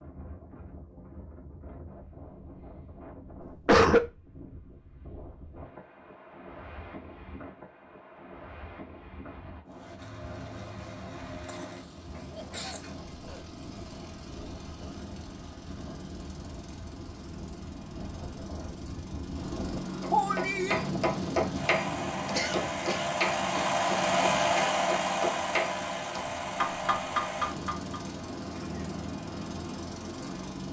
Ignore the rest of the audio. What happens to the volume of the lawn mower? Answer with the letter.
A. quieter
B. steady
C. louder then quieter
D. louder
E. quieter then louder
C.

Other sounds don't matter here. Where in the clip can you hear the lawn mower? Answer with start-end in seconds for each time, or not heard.
9.7-30.6.